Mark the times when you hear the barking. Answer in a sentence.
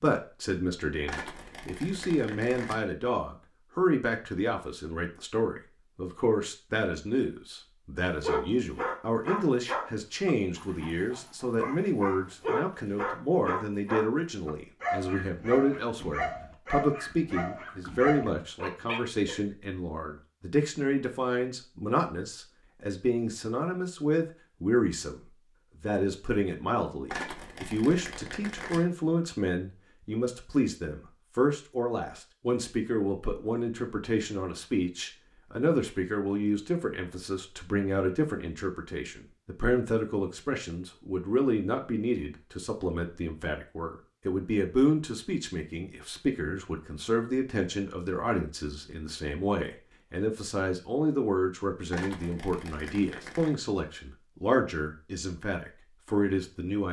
The barking can be heard from 8.2 to 19.4 s.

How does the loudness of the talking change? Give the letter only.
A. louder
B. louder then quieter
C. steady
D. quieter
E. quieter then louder
C.